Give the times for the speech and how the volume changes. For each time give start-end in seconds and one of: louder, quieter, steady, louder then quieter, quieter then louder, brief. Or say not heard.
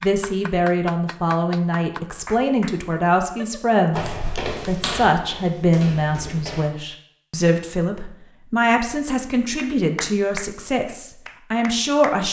0.0-12.2 steady.